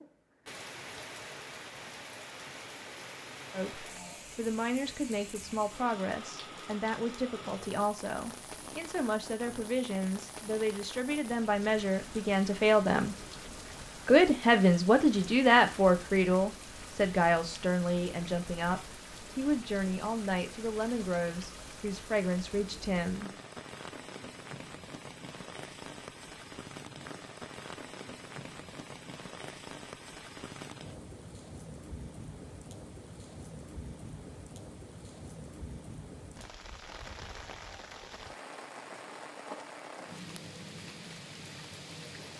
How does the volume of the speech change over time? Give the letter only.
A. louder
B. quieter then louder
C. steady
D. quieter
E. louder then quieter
E.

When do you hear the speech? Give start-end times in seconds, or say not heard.
3.5-13.2, 14.1-23.3.